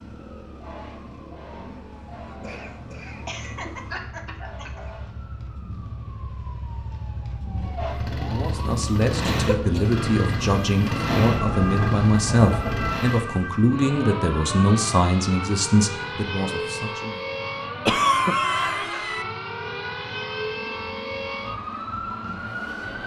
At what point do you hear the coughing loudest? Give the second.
18 s.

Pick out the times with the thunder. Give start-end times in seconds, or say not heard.
11.1-12.9.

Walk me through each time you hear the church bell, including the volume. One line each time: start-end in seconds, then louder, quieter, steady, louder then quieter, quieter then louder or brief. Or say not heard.
not heard.